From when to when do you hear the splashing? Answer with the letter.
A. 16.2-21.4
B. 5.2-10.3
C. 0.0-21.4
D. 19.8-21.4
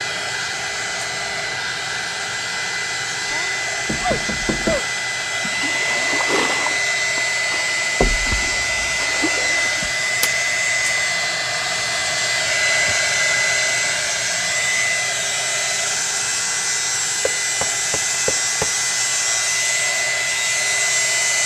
B.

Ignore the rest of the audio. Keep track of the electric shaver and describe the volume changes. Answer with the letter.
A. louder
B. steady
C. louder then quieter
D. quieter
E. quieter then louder
A.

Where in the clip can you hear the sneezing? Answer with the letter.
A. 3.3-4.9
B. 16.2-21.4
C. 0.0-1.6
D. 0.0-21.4
A.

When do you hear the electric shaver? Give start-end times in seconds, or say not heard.
0.0-21.4.